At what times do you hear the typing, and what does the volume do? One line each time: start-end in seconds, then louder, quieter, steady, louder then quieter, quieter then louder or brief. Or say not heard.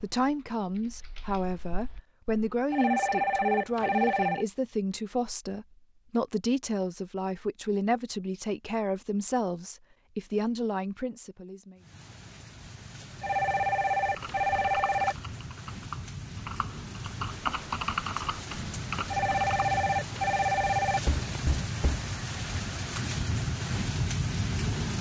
0.0-2.6 brief
14.2-19.6 louder then quieter.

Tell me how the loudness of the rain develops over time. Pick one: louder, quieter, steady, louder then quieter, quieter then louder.
louder.